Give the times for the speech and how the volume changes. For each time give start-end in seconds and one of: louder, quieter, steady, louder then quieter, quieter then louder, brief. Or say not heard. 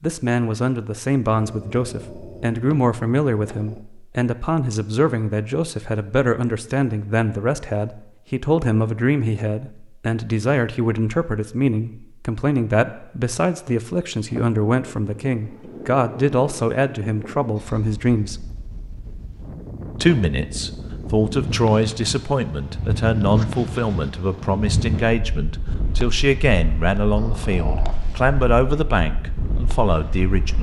0.0-18.4 steady
19.9-30.5 steady.